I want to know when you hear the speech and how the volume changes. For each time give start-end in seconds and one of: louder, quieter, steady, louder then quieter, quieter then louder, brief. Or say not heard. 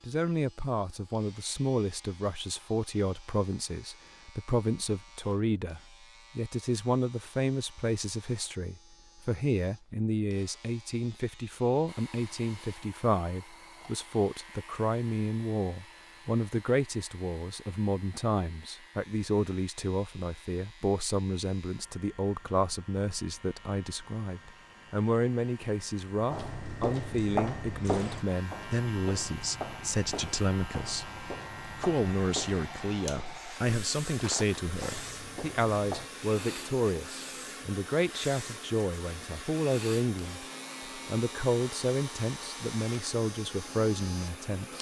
0.0-44.7 steady.